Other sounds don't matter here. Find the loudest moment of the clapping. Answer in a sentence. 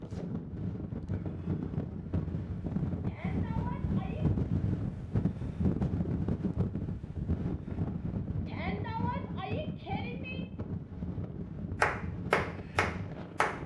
The volume of the clapping peaks at 12 seconds.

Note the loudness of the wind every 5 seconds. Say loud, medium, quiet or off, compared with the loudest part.
loud, loud, medium.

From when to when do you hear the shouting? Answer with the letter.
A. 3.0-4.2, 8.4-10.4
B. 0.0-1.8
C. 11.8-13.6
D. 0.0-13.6
A.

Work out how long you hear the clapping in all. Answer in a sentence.
You can hear the clapping for 2 seconds altogether.